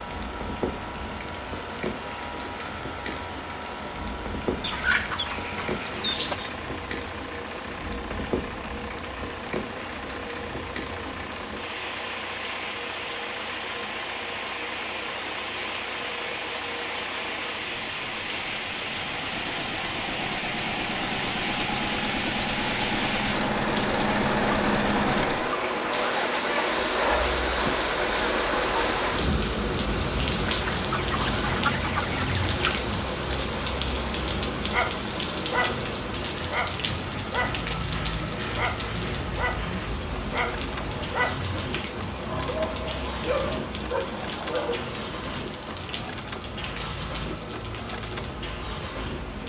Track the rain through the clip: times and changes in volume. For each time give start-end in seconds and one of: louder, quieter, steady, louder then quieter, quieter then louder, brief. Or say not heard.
0.0-49.4 louder then quieter.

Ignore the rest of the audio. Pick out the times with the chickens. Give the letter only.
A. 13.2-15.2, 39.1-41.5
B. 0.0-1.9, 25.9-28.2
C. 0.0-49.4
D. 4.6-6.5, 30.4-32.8
D.